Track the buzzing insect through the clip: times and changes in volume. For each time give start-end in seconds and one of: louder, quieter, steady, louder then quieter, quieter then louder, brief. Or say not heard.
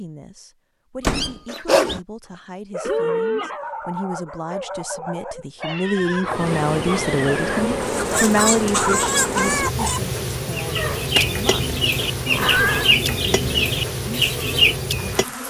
6.2-15.4 steady.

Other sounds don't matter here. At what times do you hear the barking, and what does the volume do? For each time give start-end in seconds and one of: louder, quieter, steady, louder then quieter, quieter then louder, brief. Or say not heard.
1.9-8.2 steady.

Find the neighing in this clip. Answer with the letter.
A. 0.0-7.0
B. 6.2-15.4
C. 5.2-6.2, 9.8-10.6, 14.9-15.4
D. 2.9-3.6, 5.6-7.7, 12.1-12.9
D.